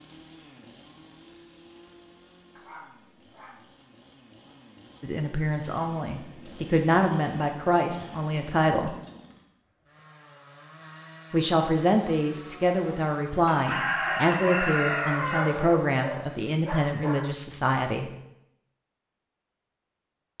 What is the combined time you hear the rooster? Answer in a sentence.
You can hear the rooster for 2 seconds altogether.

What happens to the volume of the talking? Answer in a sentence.
The volume of the talking stays about the same.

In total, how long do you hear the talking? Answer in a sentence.
You can hear the talking for 11 seconds altogether.